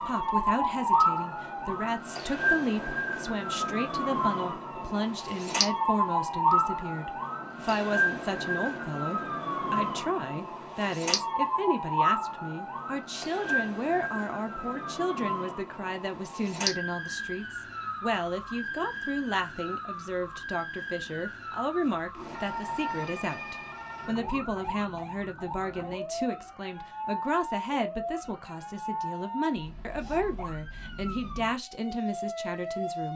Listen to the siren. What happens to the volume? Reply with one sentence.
The loudness of the siren goes down.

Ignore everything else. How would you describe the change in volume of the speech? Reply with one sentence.
The loudness of the speech stays about the same.